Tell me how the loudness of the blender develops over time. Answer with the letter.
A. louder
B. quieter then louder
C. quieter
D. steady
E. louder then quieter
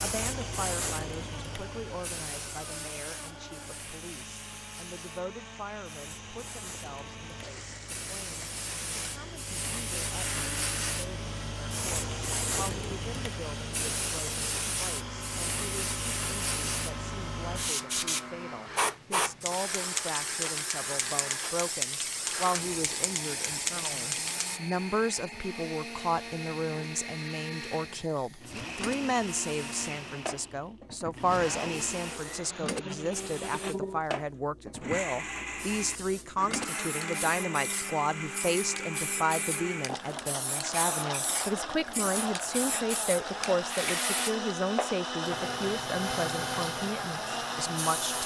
A.